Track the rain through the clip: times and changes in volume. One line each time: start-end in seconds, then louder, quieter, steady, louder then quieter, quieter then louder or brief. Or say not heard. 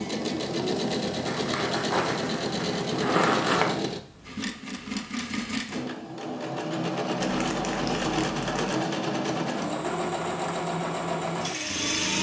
not heard.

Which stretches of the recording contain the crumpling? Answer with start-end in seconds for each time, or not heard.
1.2-3.8, 7.2-8.8.